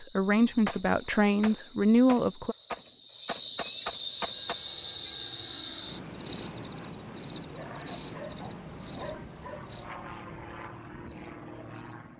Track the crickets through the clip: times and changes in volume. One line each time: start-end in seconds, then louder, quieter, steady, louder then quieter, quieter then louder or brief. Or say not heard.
0.0-12.1 louder then quieter.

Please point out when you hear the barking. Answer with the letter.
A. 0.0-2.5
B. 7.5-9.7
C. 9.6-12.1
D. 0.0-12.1
B.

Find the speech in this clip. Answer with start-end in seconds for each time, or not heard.
0.0-2.5.